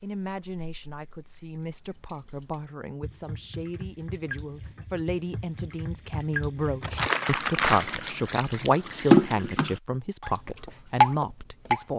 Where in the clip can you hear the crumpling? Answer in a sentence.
The crumpling can be heard from 6.8 to 9.4 s.